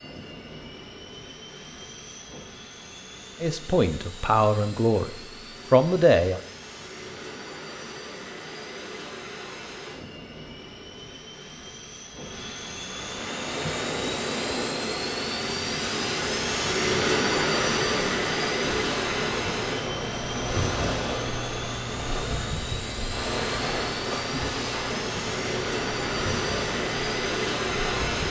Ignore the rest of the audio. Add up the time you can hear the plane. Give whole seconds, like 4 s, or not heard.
28 s.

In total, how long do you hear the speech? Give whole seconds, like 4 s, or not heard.
3 s.